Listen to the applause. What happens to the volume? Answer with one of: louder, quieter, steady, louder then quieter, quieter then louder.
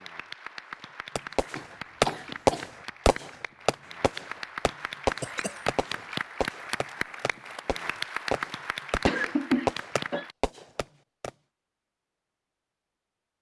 louder.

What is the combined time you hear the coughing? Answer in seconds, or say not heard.
3 s.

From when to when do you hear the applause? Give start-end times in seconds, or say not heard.
0.0-10.3.